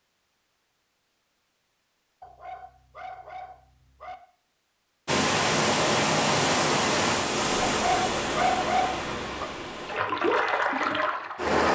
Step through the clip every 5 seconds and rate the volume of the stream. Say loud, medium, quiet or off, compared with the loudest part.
off, loud, loud.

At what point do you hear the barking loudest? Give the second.
9 s.